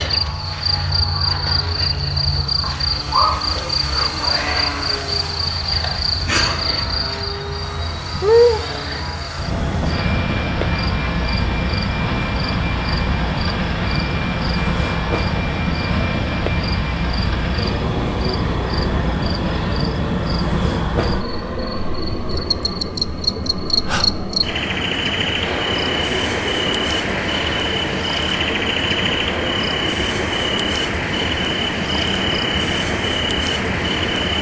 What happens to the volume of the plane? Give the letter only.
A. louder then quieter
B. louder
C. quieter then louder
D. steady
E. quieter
D.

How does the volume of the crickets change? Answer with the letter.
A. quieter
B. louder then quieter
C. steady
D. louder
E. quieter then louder
C.